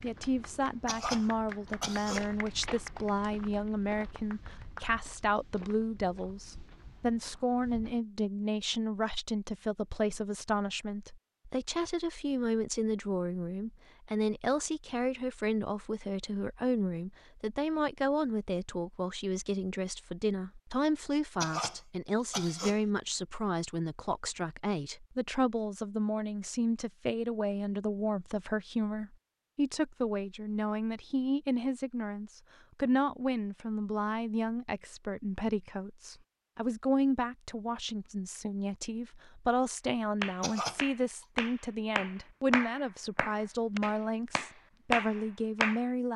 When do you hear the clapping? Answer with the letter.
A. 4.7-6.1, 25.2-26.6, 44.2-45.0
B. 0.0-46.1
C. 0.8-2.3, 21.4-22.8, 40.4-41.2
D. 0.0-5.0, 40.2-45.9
D.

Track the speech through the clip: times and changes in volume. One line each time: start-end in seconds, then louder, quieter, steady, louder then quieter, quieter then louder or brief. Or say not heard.
0.0-46.1 steady.